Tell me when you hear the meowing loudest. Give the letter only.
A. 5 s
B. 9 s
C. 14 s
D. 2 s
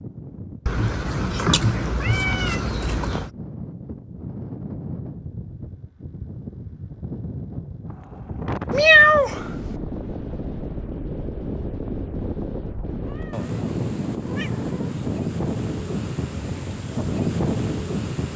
B.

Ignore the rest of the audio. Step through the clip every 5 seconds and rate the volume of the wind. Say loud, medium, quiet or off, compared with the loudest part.
medium, medium, loud, loud.